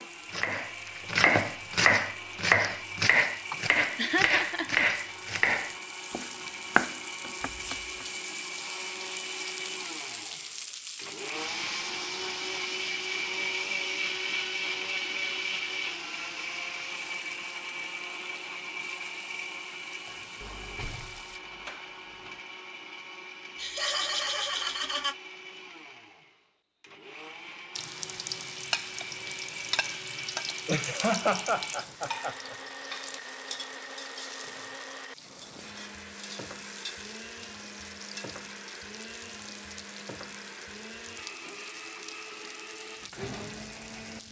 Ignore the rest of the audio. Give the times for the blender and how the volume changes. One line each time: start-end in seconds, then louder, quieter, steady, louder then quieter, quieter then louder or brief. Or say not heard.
0.0-44.2 louder then quieter.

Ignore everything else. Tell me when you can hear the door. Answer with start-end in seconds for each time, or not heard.
20.4-22.4.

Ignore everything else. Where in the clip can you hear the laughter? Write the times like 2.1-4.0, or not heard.
3.5-4.8, 23.6-25.1, 30.6-32.5.